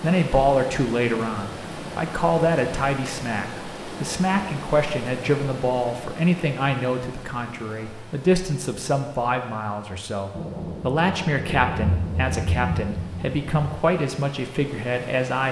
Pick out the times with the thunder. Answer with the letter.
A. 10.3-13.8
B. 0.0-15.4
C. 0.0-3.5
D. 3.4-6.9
A.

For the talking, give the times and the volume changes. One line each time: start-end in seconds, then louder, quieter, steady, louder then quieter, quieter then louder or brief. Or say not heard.
0.0-15.4 steady.